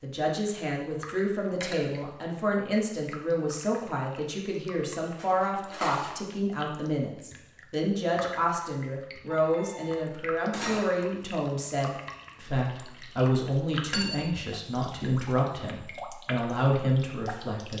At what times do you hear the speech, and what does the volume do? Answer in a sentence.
The speech can be heard from 0.0 to 17.7 s, at a steady volume.